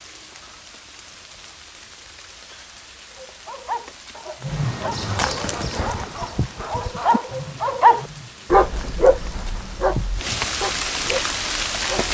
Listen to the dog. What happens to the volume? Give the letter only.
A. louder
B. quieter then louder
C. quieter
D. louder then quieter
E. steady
D.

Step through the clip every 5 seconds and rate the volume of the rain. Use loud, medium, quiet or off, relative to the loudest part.
quiet, quiet, loud.